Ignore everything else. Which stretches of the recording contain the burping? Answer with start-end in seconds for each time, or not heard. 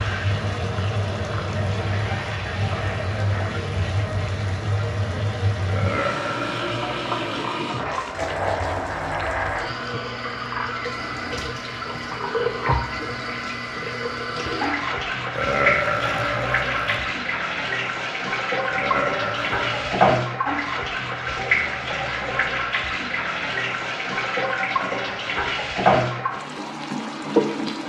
5.7-7.4, 15.3-17.1, 18.7-20.1.